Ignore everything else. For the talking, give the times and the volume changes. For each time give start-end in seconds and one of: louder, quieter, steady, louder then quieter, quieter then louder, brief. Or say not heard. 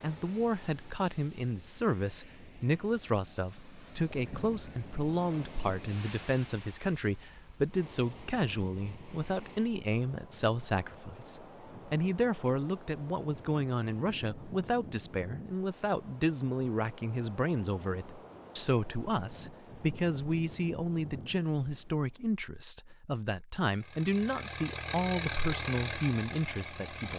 0.0-27.1 steady.